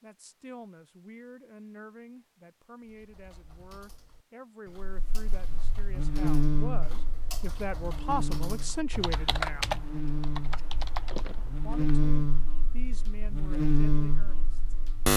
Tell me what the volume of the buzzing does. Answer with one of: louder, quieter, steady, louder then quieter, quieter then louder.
quieter then louder.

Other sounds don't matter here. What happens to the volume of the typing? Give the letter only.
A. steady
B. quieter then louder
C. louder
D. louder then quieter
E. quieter
D.